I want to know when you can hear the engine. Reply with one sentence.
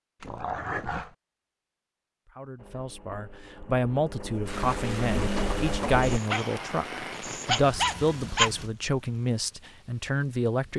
You can hear the engine from 2.5 to 6.2 s.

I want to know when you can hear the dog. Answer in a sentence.
The dog can be heard from 0.2 to 1.1 s and from 6.0 to 8.5 s.